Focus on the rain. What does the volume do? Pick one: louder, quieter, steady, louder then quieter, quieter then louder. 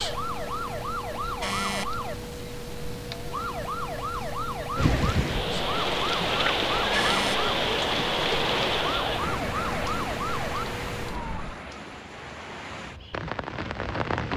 quieter.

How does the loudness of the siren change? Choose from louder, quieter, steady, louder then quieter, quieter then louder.
steady.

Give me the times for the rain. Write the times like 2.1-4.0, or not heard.
4.8-14.3.